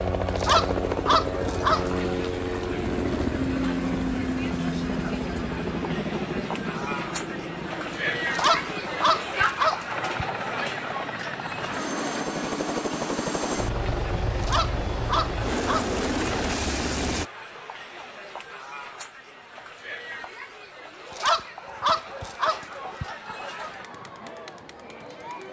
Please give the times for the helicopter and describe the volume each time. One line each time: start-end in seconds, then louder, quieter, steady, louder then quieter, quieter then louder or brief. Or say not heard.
0.0-17.2 quieter then louder.